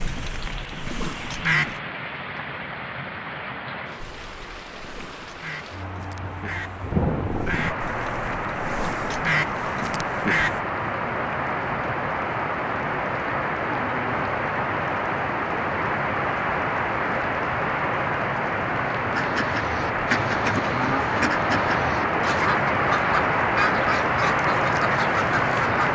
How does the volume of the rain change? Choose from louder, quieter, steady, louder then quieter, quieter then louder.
louder.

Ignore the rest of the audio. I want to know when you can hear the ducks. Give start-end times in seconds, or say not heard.
0.0-1.8, 4.0-10.6, 19.1-25.9.